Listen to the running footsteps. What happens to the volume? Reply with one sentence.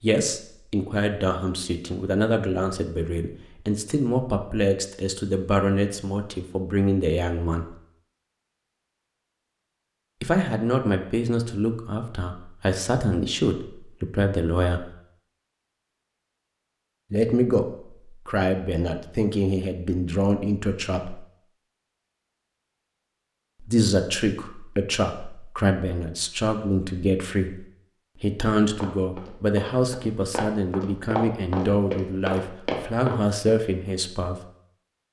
The loudness of the running footsteps goes up.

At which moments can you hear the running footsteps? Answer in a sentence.
You can hear the running footsteps from 28.4 to 33.5 s.